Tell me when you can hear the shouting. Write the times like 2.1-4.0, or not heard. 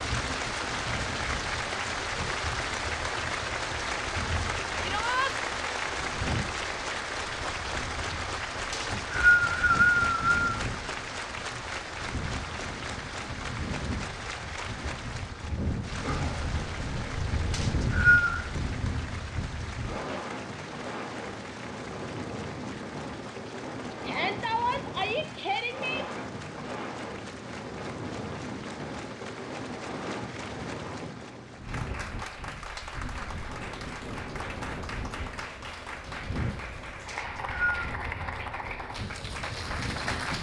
4.8-5.3, 24.1-26.1.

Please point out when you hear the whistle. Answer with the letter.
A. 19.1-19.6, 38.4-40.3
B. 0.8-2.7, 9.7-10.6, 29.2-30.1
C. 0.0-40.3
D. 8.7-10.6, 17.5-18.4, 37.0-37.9
D.